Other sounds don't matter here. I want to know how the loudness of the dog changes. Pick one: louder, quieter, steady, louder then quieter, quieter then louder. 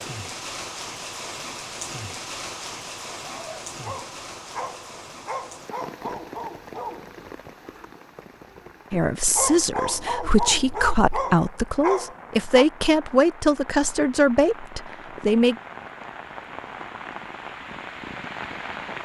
louder.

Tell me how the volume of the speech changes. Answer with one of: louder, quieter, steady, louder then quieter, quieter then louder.
steady.